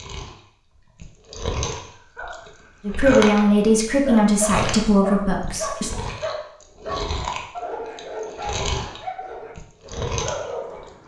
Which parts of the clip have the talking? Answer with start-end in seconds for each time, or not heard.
2.9-5.9.